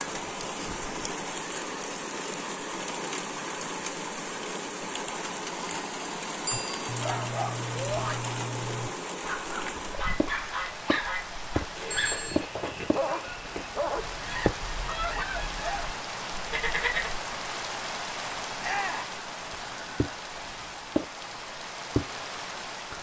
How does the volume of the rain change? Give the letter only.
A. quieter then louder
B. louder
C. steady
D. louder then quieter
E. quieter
C.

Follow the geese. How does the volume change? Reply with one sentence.
The volume of the geese goes down, then up.